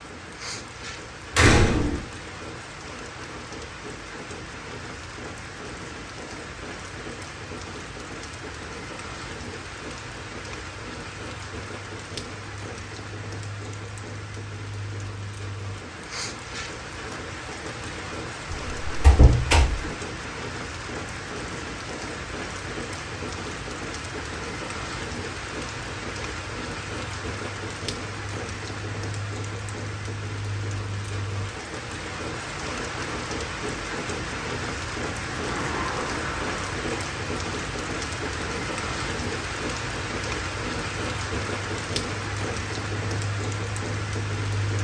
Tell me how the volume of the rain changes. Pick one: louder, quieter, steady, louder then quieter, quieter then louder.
louder.